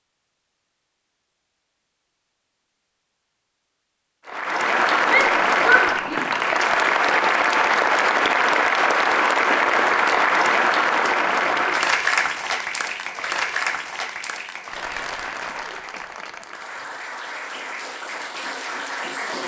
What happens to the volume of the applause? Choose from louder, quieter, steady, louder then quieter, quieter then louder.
quieter.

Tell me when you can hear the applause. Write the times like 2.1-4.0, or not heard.
4.2-19.4.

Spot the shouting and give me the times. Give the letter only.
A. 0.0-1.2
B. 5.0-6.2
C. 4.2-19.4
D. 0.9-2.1
B.